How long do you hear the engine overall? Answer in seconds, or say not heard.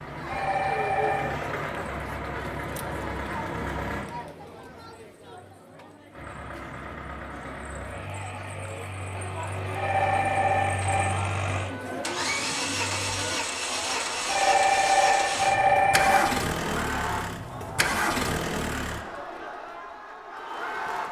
17 s.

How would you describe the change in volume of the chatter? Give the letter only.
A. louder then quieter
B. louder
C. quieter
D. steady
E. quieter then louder
E.